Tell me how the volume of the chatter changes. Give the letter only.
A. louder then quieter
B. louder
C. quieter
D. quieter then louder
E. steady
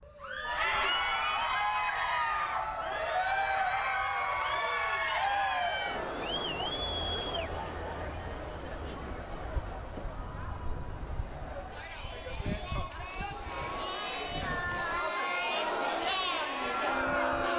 D.